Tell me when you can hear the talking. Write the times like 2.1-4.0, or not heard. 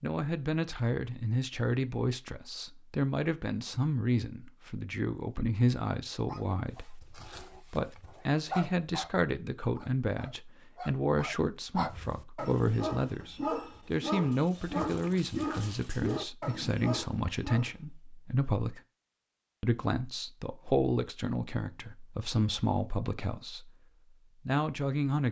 0.0-18.8, 19.6-23.7, 24.4-25.2.